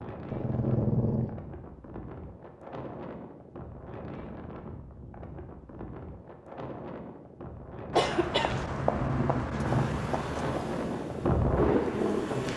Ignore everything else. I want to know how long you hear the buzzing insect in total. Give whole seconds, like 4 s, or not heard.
3 s.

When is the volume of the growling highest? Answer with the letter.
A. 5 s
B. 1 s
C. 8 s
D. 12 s
B.